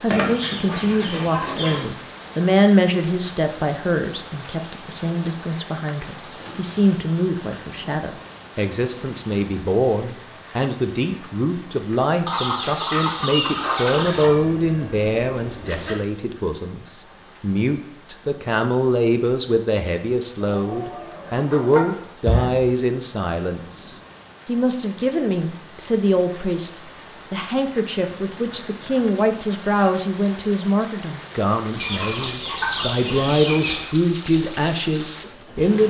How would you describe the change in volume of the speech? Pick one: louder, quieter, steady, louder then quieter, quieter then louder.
steady.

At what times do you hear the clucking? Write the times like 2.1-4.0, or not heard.
0.1-1.9, 12.2-14.3, 20.4-22.1, 31.8-33.8.